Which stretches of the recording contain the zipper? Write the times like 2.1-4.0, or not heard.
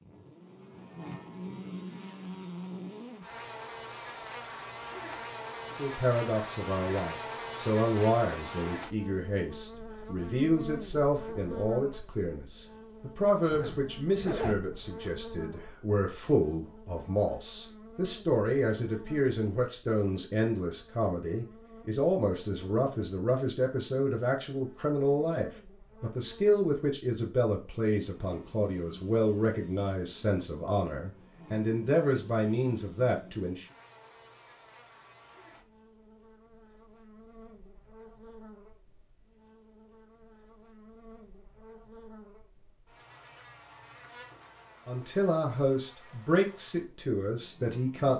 13.5-15.1.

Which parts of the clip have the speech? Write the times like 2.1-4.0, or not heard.
5.8-33.6, 44.9-48.1.